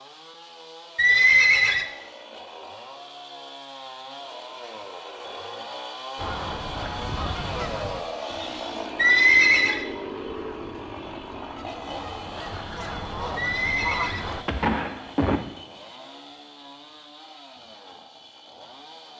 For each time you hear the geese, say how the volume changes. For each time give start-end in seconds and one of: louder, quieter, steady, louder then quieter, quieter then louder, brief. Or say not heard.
6.2-14.4 quieter then louder.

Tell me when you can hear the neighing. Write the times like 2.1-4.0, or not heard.
0.9-1.9, 8.9-9.8, 13.3-15.4.